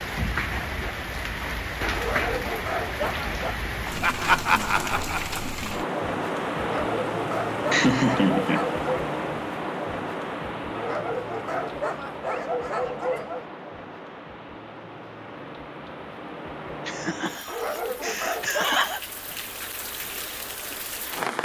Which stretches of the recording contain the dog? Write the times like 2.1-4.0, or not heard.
1.9-3.5, 6.5-9.1, 10.7-13.4, 17.4-18.9.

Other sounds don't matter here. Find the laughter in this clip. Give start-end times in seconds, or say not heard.
4.0-5.5, 7.7-8.7, 16.9-19.0.